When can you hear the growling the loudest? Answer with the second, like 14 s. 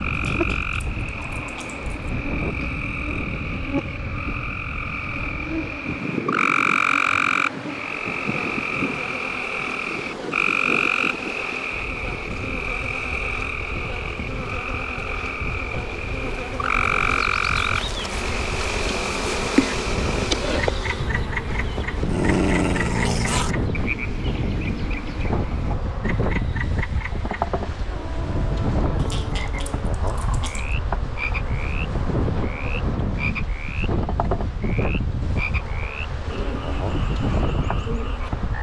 22 s.